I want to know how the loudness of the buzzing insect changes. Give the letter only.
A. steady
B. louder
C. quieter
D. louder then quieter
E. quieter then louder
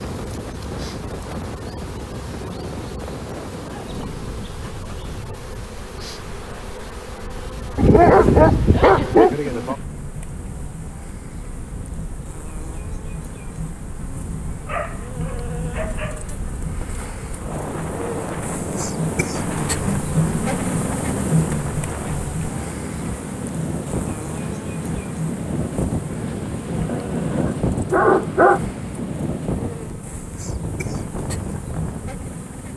D.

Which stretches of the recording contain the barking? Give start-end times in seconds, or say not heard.
7.8-9.3, 14.7-16.4, 26.9-28.6.